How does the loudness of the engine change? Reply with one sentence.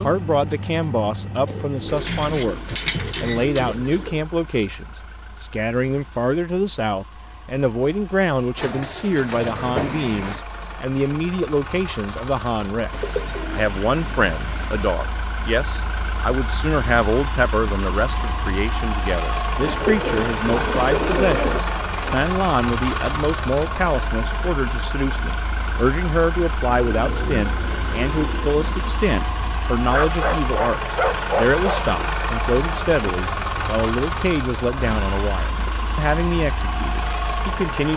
The volume of the engine goes up.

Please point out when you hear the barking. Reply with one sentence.
The barking can be heard from 29.9 to 31.8 s.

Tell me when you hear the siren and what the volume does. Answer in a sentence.
You can't hear the siren here.